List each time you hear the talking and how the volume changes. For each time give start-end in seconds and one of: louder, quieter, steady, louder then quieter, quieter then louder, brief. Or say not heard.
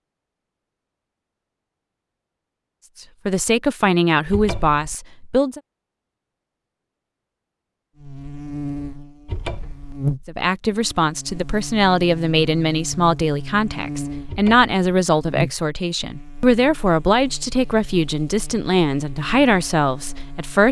3.2-5.6 brief
10.2-20.6 steady.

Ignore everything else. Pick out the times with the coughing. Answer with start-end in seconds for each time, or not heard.
not heard.